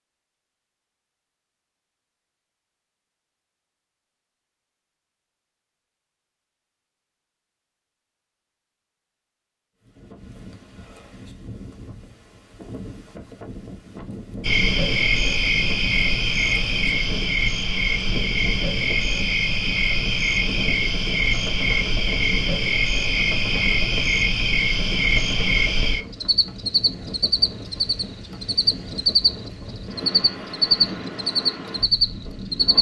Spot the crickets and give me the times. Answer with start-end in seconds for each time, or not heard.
14.4-32.7.